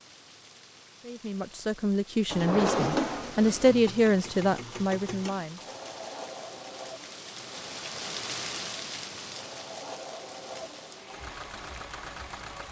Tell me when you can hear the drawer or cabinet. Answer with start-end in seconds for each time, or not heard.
2.2-3.8.